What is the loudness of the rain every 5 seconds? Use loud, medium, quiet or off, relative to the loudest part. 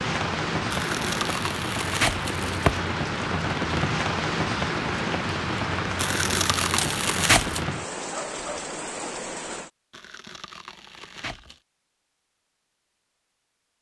loud, loud, off.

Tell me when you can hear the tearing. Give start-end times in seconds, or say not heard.
0.7-2.8, 6.0-7.6, 9.9-11.6.